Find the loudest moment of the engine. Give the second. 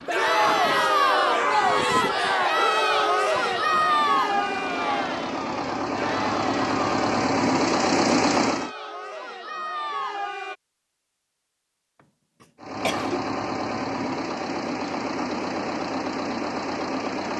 8 s.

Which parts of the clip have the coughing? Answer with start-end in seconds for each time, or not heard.
12.4-13.2.